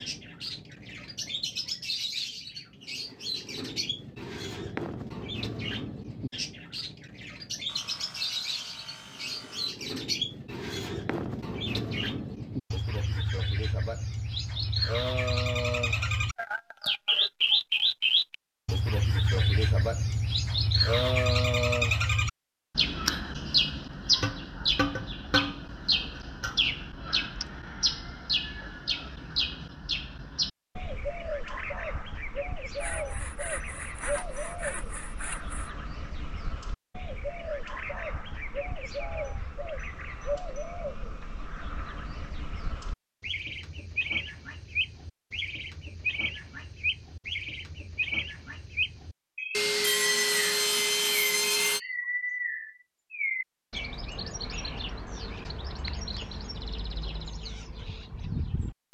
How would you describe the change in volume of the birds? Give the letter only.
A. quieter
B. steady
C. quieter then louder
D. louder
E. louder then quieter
E.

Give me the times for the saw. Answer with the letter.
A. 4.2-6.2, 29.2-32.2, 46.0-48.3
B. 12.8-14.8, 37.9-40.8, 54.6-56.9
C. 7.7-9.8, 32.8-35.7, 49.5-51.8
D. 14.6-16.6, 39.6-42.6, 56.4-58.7
C.